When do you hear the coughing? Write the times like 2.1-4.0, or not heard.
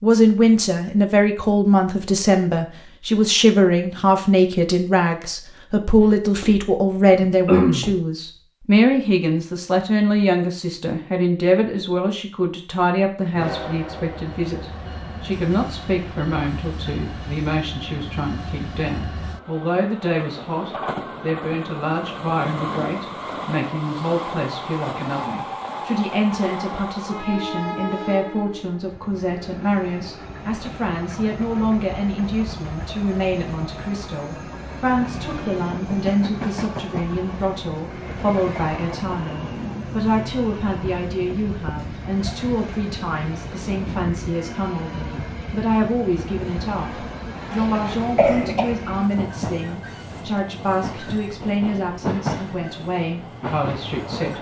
6.0-8.0, 47.5-48.8.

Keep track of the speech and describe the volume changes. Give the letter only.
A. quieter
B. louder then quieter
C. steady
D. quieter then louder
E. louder
A.